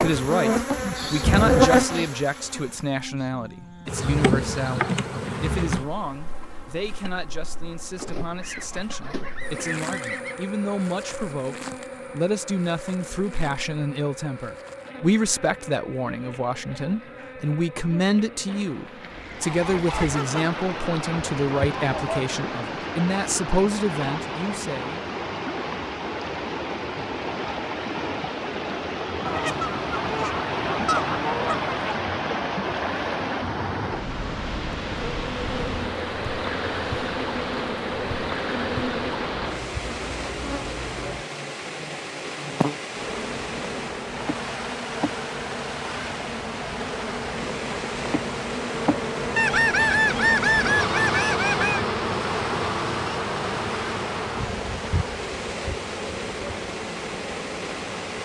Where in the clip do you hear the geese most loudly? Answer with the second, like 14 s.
50 s.